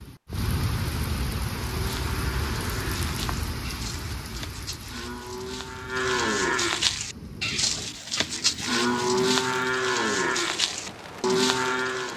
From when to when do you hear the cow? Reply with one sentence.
The cow can be heard from 1.6 to 12.1 s.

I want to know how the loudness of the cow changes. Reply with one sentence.
The volume of the cow goes up.